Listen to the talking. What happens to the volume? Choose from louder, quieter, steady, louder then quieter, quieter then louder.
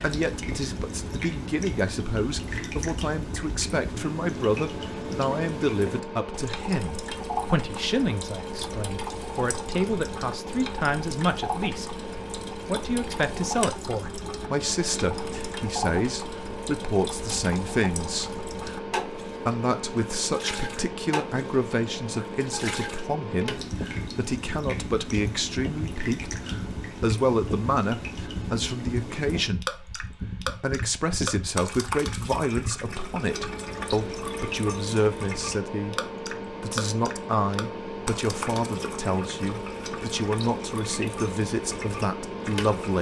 steady.